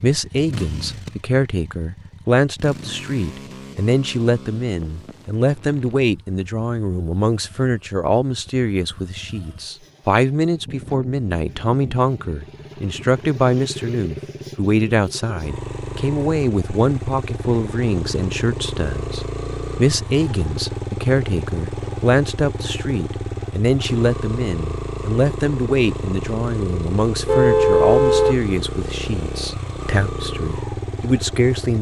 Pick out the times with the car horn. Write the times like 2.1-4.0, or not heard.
27.2-28.4.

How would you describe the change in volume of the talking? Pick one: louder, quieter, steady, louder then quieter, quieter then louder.
steady.